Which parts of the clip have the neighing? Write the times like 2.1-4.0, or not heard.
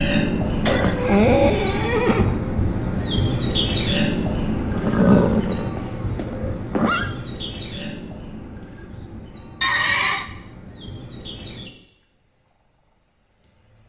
0.7-2.4, 4.7-7.1, 9.6-10.2.